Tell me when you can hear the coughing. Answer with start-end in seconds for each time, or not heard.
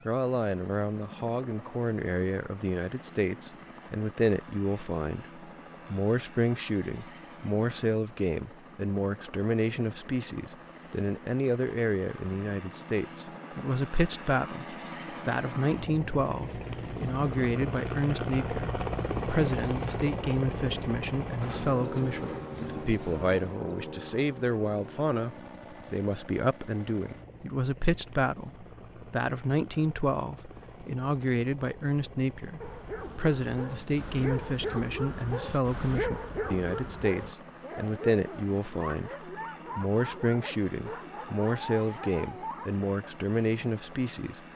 not heard.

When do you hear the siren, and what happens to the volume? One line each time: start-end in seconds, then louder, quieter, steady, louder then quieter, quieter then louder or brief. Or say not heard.
not heard.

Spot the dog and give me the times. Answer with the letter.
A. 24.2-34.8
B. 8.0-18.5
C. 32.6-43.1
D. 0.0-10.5
C.